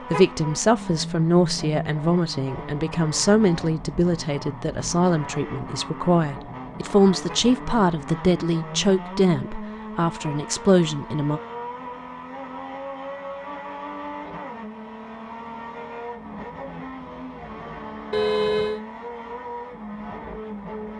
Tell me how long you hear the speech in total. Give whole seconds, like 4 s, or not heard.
11 s.